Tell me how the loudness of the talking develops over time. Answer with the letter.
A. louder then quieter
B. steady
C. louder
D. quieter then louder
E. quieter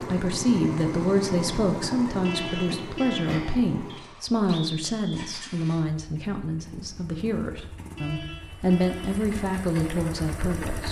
D.